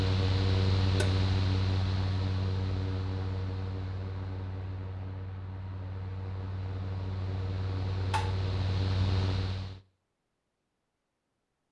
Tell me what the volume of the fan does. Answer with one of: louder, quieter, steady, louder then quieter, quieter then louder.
quieter then louder.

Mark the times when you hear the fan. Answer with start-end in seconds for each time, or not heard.
0.0-9.8.